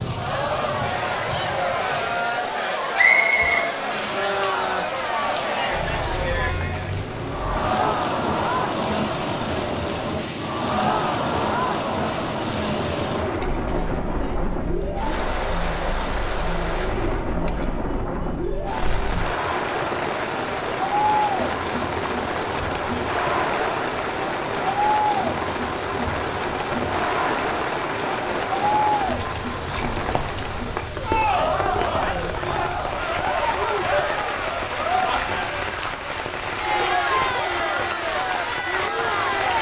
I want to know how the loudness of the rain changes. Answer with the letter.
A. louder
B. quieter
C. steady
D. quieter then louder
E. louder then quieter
C.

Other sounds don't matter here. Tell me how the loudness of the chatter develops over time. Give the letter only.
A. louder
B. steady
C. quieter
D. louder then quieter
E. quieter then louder
B.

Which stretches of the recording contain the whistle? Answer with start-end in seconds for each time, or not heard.
3.0-3.6.